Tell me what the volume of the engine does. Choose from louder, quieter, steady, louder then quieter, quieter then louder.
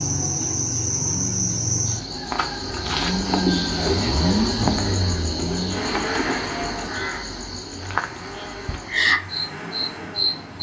louder then quieter.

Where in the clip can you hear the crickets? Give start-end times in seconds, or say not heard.
0.0-10.5.